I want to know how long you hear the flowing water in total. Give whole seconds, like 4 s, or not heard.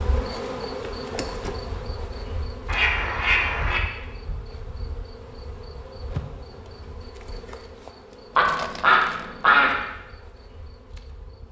not heard.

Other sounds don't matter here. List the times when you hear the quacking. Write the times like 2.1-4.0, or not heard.
2.6-3.8, 8.3-9.8.